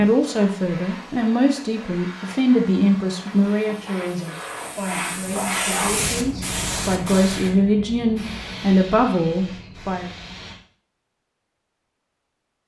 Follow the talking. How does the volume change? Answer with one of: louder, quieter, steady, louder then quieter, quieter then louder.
quieter then louder.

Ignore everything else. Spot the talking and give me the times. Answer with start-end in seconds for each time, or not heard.
0.0-10.1.